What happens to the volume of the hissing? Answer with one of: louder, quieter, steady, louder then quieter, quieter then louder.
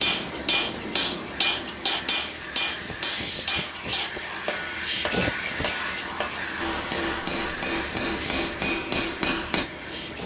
louder then quieter.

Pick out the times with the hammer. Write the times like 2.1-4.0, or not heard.
0.0-9.7.